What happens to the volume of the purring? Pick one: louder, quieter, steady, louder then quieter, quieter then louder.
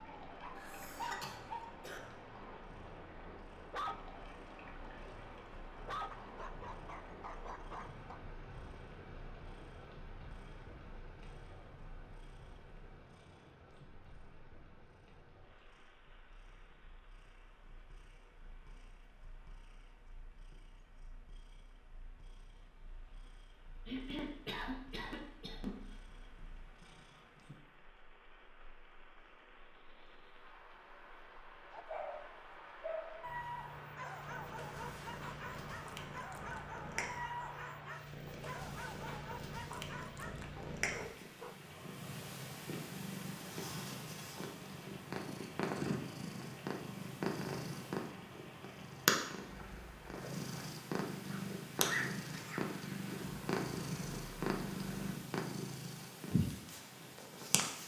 louder.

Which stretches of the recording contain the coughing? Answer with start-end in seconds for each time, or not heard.
0.6-2.0, 23.9-25.8, 51.2-52.7.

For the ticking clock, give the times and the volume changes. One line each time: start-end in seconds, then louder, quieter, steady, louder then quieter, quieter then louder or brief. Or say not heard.
not heard.